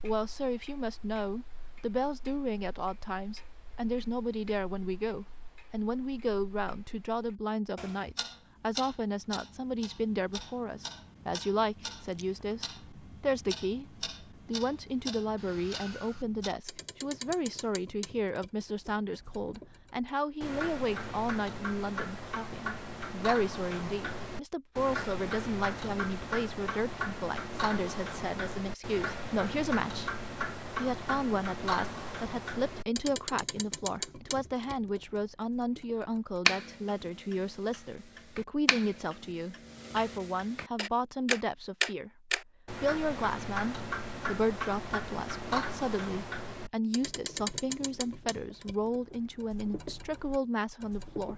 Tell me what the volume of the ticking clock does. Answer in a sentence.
The loudness of the ticking clock goes up.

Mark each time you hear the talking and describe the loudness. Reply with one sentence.
You can hear the talking from 0.0 to 51.3 s, at a steady volume.